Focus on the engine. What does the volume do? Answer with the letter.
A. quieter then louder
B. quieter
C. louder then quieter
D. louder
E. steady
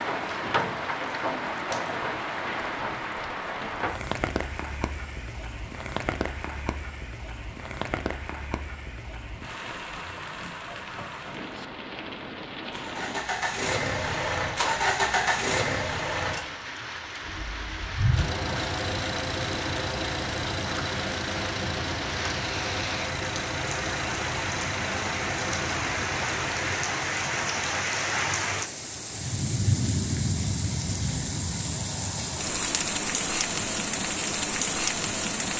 B.